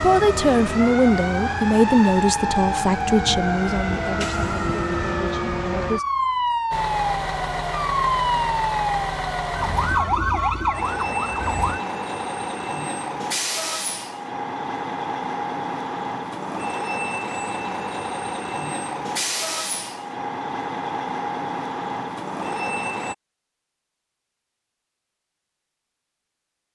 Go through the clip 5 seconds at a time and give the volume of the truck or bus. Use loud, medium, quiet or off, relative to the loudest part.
off, loud, loud, loud, loud, off.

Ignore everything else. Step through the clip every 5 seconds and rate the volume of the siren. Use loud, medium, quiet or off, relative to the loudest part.
loud, loud, loud, off, off, off.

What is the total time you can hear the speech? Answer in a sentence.
You can hear the speech for 6 seconds altogether.